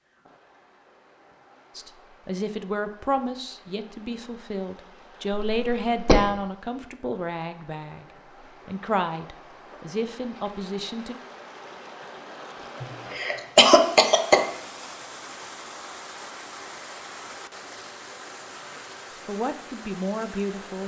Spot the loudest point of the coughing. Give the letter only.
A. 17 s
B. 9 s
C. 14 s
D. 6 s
C.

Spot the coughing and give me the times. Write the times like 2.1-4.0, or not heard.
5.3-6.2, 12.8-14.4.